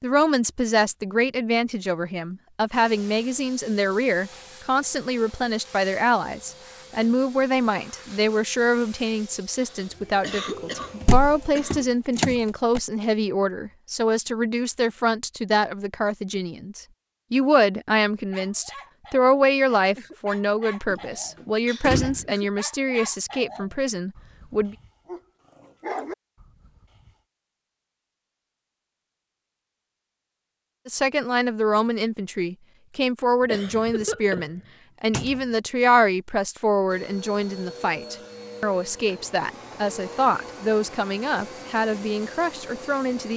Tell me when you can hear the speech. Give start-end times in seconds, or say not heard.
0.0-24.8, 30.9-43.3.